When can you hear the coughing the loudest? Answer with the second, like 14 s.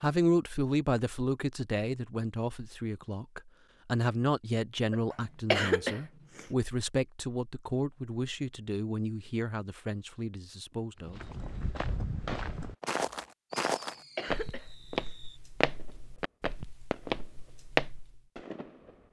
6 s.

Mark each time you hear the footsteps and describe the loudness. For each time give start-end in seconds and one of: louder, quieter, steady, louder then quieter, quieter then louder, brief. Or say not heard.
11.1-18.2 louder.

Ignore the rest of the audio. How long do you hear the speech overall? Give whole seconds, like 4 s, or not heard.
11 s.